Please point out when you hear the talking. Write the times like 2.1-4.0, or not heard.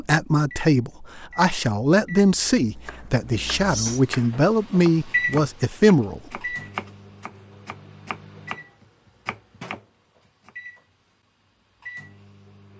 0.0-6.4.